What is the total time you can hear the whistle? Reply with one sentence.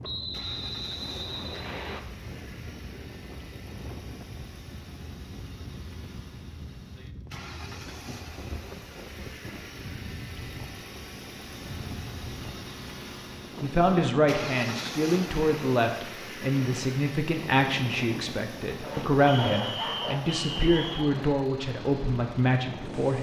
The whistle can be heard for 4 seconds in total.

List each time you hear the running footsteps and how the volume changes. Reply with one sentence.
The running footsteps can't be heard in this clip.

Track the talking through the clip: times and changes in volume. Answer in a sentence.
You can hear the talking from 13.6 to 23.1 s, at a steady volume.